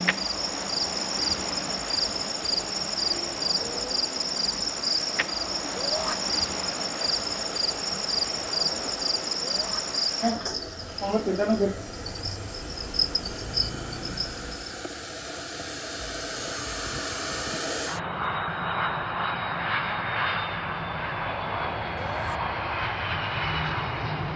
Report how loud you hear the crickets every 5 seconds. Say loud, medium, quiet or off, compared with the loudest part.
loud, loud, loud, off, off.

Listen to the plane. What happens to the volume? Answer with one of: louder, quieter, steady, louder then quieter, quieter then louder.
louder.